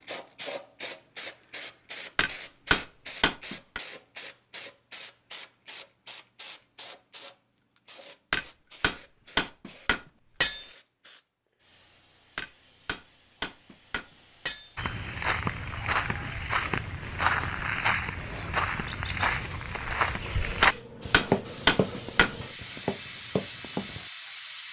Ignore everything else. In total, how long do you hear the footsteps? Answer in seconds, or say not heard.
9 s.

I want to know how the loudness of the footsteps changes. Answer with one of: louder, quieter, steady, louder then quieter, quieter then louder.
quieter.